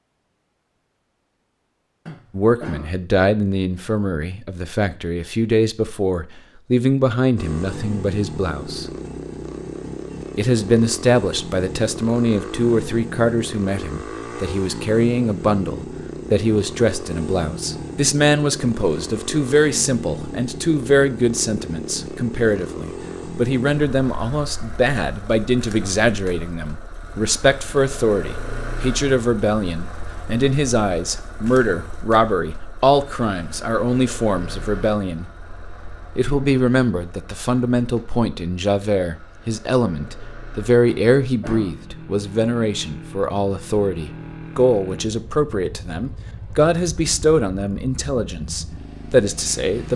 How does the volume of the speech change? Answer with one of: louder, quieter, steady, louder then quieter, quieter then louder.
steady.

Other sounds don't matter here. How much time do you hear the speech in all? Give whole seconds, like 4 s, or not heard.
45 s.